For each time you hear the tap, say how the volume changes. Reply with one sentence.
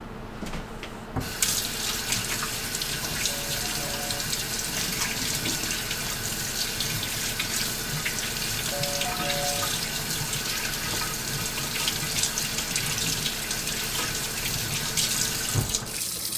You can hear the tap from 0.0 to 16.3 s, at a steady volume.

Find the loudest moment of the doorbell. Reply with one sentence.
The loudest moment of the doorbell is at 9 seconds.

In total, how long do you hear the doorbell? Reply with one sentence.
The doorbell can be heard for 2 seconds in total.